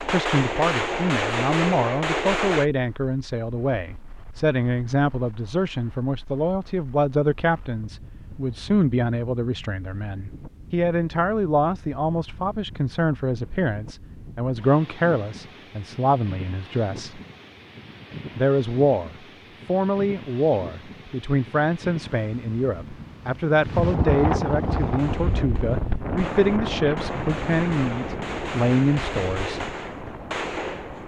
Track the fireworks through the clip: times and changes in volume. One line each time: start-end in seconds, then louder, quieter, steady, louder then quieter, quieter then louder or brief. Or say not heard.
0.0-2.6 brief
24.9-31.0 louder.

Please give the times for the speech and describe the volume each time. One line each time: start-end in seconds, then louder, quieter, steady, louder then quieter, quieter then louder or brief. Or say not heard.
0.1-17.2 steady
18.4-29.6 steady.